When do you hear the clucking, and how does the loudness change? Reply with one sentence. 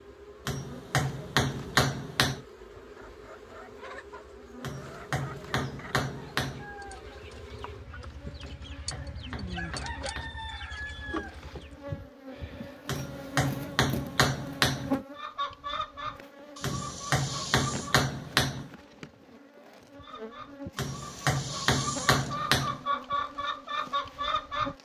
You can hear the clucking from 2.7 to 11.8 s, getting louder; briefly from 15.2 to 18.0 s; and from 19.9 to 24.8 s, getting louder.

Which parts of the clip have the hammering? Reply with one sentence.
The hammering can be heard from 0.5 to 2.5 s, from 4.6 to 6.7 s, from 8.4 to 10.4 s, from 12.8 to 15.0 s, from 16.6 to 18.7 s and from 20.8 to 22.8 s.